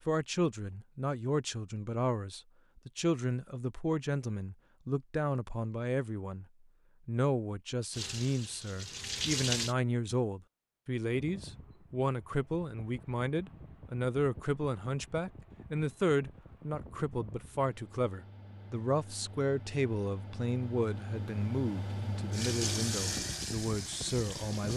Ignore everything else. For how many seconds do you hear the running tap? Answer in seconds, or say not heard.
4 s.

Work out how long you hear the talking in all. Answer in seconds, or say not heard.
24 s.